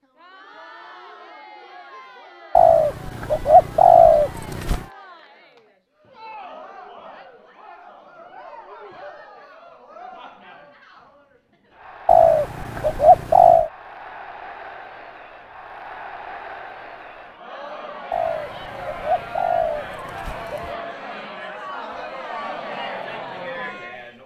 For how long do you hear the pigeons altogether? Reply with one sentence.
You can hear the pigeons for 7 seconds altogether.